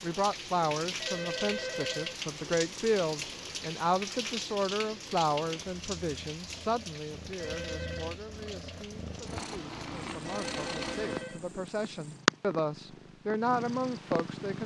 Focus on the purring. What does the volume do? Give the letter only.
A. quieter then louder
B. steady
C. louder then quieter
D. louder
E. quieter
D.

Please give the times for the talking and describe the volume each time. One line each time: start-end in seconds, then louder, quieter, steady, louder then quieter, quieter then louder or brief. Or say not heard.
0.0-14.6 quieter then louder.